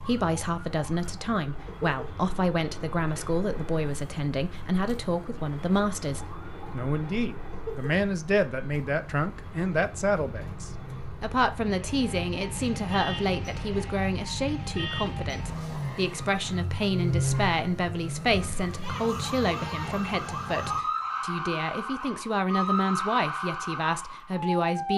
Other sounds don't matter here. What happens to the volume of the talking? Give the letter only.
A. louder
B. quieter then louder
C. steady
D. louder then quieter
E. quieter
C.